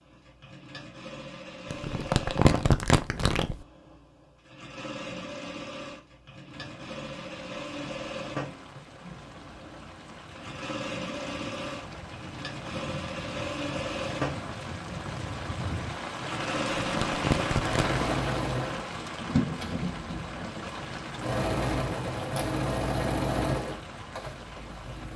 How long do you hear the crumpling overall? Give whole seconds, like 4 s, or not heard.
3 s.